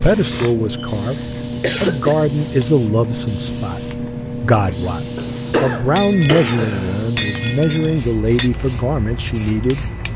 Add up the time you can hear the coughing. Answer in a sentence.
The coughing can be heard for 4 seconds in total.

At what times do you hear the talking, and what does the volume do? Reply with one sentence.
You can hear the talking from 0.0 to 10.1 s, at a steady volume.